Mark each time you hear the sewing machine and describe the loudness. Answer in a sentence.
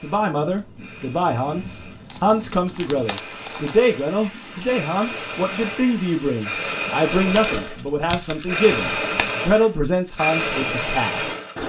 You can hear the sewing machine from 0.0 to 11.6 s, getting louder.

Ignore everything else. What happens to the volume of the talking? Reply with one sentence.
The loudness of the talking stays about the same.